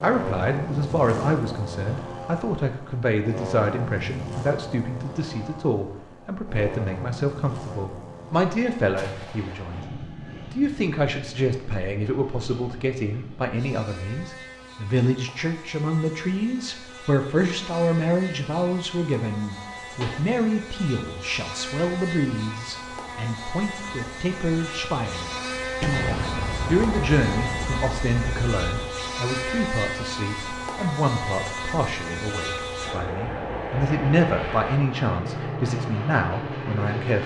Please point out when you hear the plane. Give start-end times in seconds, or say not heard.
0.0-37.2.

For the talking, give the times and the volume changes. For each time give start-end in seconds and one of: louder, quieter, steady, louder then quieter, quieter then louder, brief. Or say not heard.
0.0-37.2 steady.